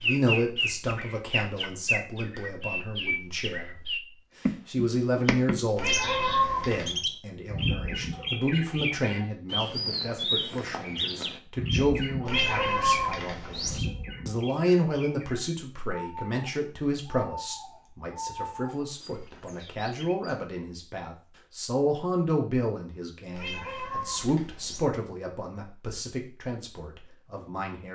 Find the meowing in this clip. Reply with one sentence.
You can hear the meowing from 5.8 to 7.0 s, from 12.2 to 13.8 s and from 23.3 to 24.9 s.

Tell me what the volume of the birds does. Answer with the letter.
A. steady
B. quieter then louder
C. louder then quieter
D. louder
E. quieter
E.